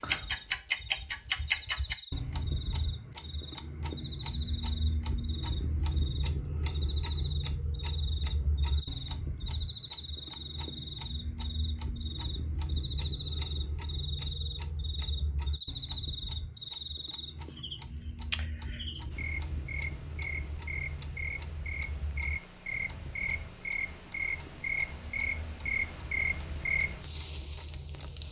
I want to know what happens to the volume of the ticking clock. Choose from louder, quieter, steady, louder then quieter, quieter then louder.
quieter.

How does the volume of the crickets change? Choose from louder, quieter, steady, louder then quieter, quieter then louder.
louder.